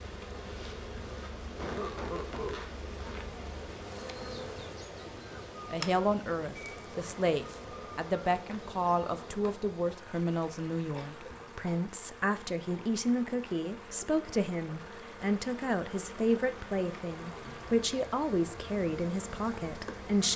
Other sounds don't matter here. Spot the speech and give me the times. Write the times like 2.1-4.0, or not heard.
5.7-20.3.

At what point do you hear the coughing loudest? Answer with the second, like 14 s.
2 s.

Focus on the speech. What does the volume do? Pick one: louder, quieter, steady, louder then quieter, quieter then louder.
steady.